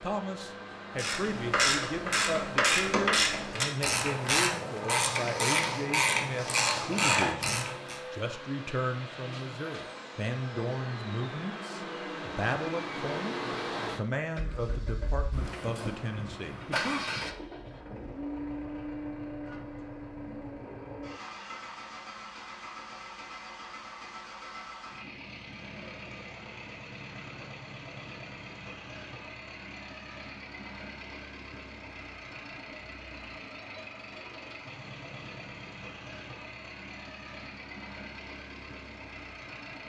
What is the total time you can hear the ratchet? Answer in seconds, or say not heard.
7 s.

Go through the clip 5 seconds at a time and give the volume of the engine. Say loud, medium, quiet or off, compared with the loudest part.
medium, medium, loud, loud, medium, medium, medium, medium.